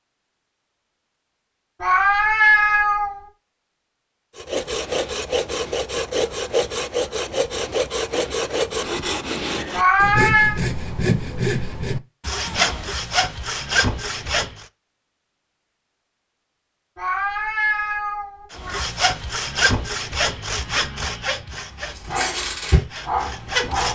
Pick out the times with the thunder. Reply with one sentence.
You can't hear the thunder here.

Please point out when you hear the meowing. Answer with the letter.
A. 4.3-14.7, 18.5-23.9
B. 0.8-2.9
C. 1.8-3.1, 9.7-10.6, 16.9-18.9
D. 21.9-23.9
C.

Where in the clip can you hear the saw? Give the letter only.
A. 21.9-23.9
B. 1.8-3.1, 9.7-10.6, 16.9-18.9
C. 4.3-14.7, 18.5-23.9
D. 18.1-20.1
C.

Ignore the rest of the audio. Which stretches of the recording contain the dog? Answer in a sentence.
You can hear the dog from 21.9 to 23.9 s.